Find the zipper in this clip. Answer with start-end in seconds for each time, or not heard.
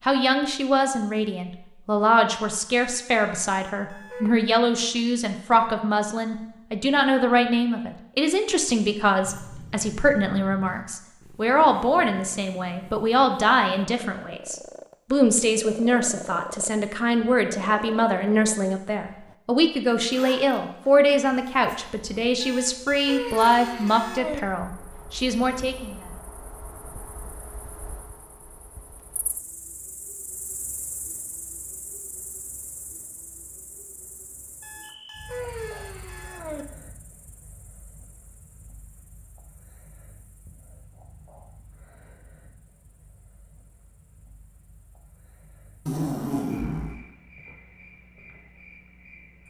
9.2-10.8, 20.1-21.8, 45.9-47.0.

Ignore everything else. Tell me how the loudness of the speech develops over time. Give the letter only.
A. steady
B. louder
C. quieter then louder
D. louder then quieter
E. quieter
A.